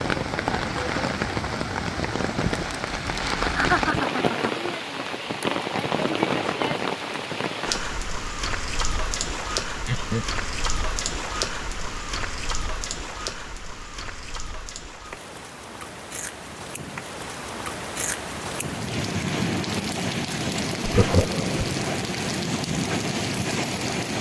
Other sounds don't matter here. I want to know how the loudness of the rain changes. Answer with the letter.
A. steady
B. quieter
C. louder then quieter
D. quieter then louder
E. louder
D.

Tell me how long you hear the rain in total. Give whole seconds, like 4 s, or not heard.
24 s.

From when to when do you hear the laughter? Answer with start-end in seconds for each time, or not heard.
3.4-4.7, 9.8-10.4, 20.9-21.7.